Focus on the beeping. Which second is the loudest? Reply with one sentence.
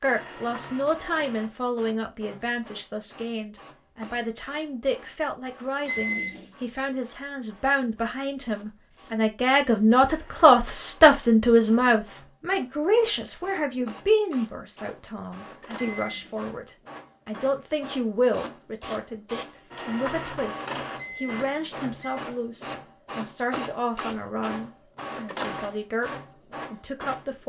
The volume of the beeping peaks at 6 seconds.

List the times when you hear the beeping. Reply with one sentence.
The beeping can be heard from 5.8 to 6.5 s, from 15.8 to 16.4 s and from 20.9 to 22.2 s.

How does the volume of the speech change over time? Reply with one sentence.
The volume of the speech goes up, then down.